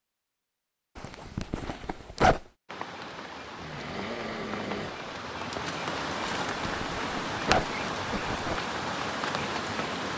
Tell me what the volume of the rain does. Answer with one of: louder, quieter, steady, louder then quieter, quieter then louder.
louder.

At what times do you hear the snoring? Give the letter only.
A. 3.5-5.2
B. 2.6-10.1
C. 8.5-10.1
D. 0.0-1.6
A.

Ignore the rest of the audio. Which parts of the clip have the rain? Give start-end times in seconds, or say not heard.
2.6-10.1.